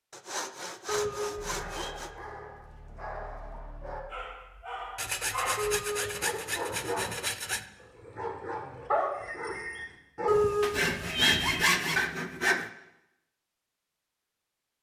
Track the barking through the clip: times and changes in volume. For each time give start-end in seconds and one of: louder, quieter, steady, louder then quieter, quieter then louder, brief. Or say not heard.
1.4-10.4 louder.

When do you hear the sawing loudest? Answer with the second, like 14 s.
12 s.